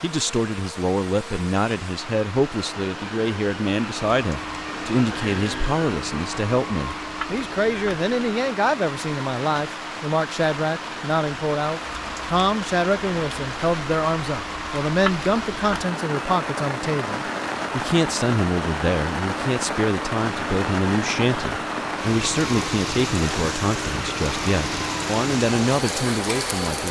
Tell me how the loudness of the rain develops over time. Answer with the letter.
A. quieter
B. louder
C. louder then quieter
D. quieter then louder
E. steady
B.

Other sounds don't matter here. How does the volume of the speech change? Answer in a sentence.
The volume of the speech stays about the same.